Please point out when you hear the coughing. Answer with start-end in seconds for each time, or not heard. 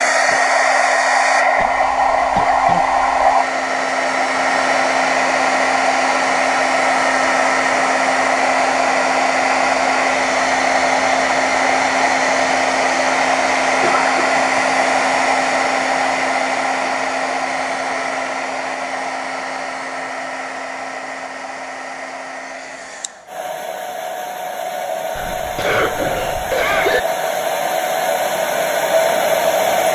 1.6-3.3, 13.8-14.5, 25.1-27.0.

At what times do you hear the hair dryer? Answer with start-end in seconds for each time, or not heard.
0.0-29.9.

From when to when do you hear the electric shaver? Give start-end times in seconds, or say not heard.
not heard.